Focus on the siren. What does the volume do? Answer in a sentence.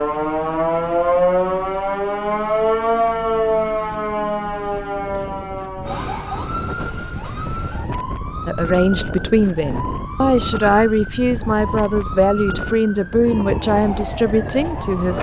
The volume of the siren goes down.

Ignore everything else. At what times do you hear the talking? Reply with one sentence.
The talking can be heard from 8.4 to 15.1 s.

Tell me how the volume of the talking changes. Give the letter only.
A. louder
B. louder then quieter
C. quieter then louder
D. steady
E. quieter
D.